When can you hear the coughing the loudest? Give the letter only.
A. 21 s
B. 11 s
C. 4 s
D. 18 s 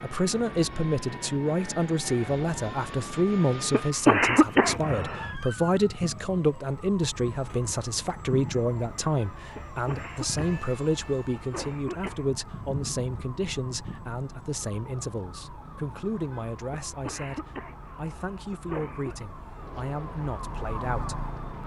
C.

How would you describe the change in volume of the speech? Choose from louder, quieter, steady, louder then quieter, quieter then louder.
quieter.